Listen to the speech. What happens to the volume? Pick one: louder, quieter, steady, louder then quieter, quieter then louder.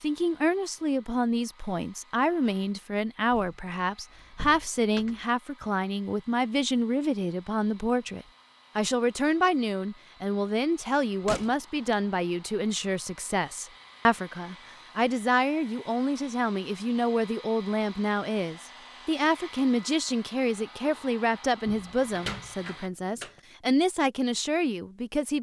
steady.